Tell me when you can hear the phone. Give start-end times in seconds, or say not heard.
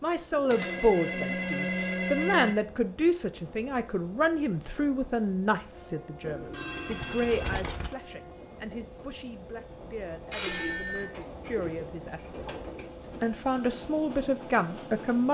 0.5-2.5, 6.5-7.6, 10.3-11.2.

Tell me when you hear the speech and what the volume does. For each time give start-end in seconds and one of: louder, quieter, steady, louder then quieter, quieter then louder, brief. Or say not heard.
0.0-12.4 quieter
13.2-15.2 brief.